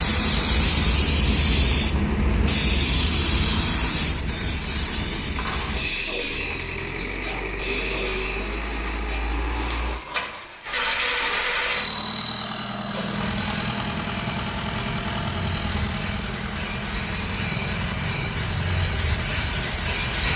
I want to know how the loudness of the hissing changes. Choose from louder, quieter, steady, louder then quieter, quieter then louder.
quieter then louder.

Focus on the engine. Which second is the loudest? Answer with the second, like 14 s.
11 s.